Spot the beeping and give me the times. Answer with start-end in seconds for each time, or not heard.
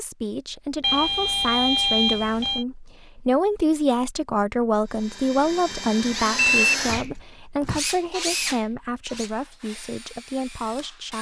0.8-2.6, 6.3-6.8.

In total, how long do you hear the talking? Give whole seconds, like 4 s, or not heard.
11 s.